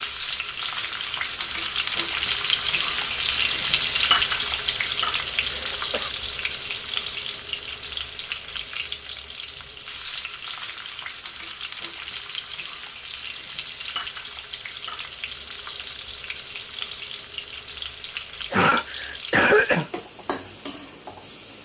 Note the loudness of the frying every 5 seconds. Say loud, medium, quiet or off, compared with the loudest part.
loud, medium, medium, medium, quiet.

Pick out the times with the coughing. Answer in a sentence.
The coughing can be heard from 5.5 to 6.1 s and from 18.5 to 19.9 s.